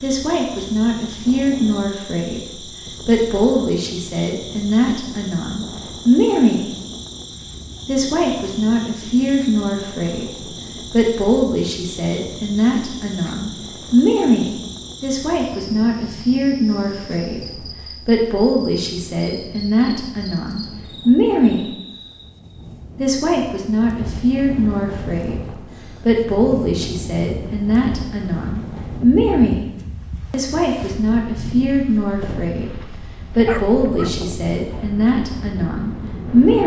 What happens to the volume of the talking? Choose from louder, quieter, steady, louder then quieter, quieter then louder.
steady.